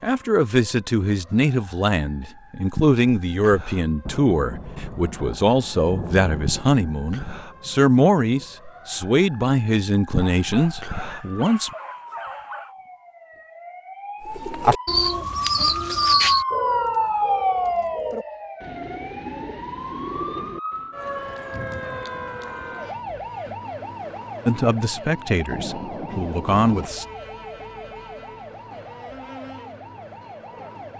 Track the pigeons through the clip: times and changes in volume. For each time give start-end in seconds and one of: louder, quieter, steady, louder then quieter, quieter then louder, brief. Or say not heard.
14.2-20.9 quieter.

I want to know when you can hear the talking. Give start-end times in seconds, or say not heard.
0.0-11.7, 24.4-27.1.